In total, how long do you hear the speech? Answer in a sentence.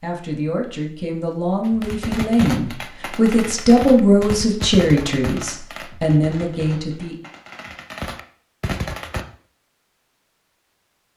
The speech can be heard for 7 seconds in total.